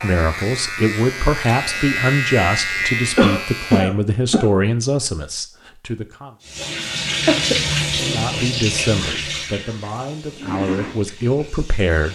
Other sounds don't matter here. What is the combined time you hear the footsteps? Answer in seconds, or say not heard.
not heard.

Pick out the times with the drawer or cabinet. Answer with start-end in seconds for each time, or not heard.
not heard.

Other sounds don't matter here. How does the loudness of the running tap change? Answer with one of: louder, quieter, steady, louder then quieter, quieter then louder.
quieter.